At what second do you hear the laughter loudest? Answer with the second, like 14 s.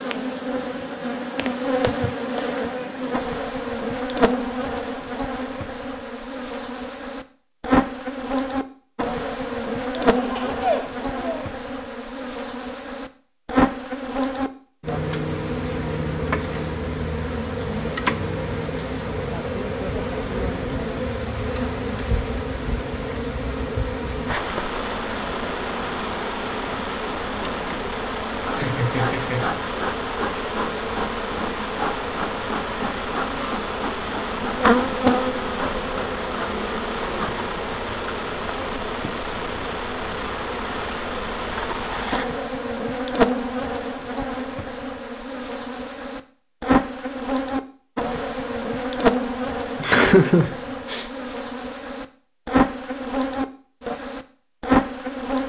50 s.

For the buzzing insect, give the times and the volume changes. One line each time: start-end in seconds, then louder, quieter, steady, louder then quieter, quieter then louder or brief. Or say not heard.
0.0-55.4 steady.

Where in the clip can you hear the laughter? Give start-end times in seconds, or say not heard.
10.0-11.6, 28.2-29.6, 49.8-51.0.